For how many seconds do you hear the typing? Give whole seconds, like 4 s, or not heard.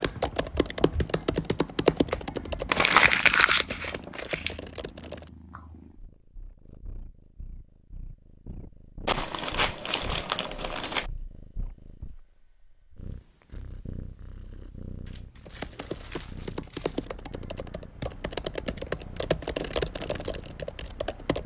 11 s.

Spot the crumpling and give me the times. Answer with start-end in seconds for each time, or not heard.
2.7-4.5, 9.1-11.1, 15.1-17.1.